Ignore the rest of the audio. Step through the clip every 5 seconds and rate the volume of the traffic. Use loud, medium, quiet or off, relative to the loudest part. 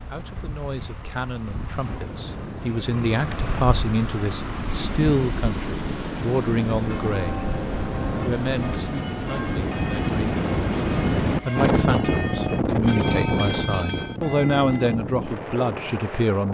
medium, loud, off, off.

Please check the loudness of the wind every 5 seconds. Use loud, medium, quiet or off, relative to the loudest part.
quiet, medium, loud, medium.